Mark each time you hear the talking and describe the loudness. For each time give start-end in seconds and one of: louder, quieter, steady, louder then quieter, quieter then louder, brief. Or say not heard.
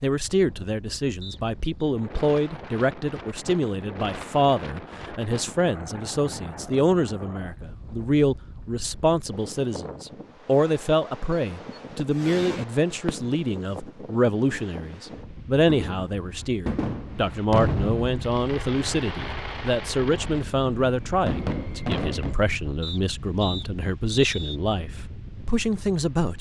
0.0-26.3 steady.